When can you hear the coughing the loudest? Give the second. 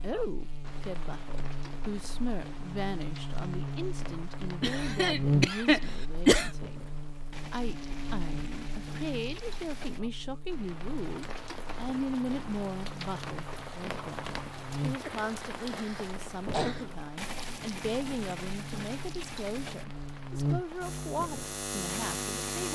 6 s.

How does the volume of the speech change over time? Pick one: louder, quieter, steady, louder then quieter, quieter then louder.
steady.